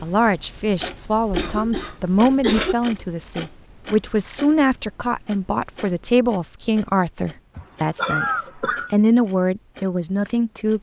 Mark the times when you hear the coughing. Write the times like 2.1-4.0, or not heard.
1.1-2.8, 7.5-8.9.